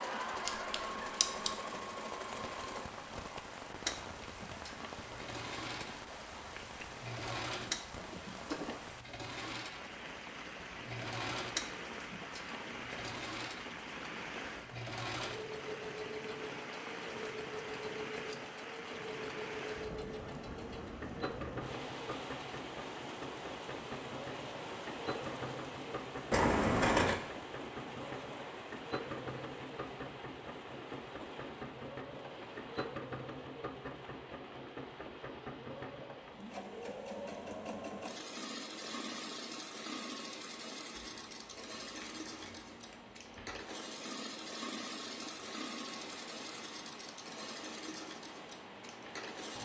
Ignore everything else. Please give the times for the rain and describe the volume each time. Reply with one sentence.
You can hear the rain from 0.0 to 49.5 s, getting quieter.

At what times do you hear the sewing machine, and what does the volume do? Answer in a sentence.
The sewing machine can be heard from 0.0 to 49.5 s, at a steady volume.